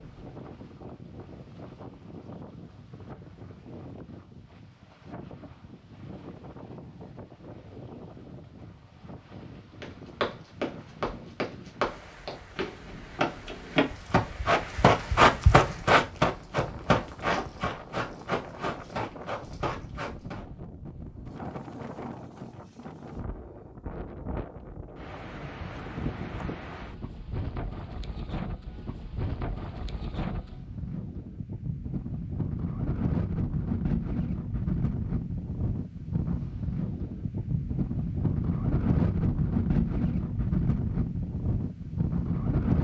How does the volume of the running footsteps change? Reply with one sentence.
The volume of the running footsteps goes up, then down.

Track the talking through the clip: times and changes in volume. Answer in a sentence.
The talking can't be heard in this clip.